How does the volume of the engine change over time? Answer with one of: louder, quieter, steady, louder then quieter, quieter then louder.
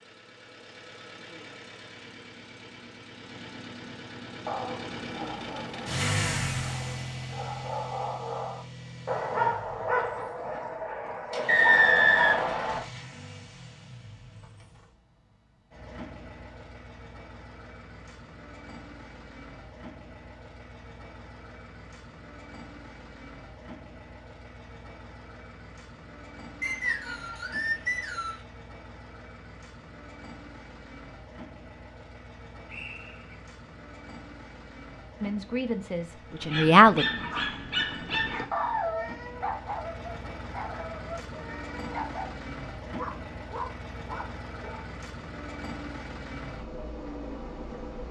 quieter then louder.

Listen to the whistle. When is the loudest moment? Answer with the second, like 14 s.
12 s.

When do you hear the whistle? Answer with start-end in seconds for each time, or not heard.
11.4-12.8, 26.6-28.4, 32.6-33.4.